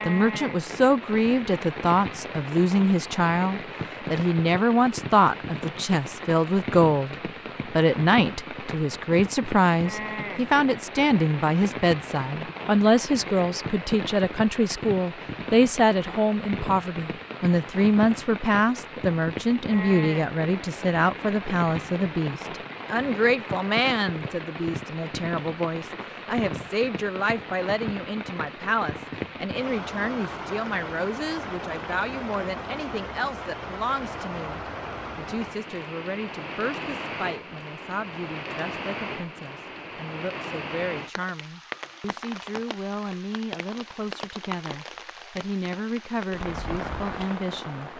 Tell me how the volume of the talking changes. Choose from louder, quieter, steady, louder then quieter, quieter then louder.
quieter.